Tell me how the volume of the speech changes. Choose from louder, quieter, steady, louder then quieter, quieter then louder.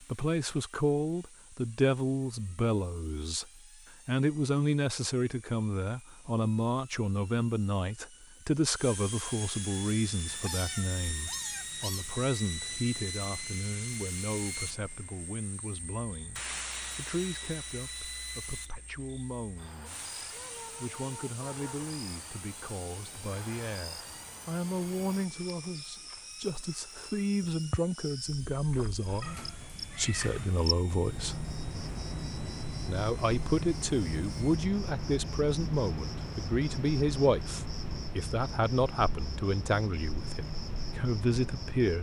quieter then louder.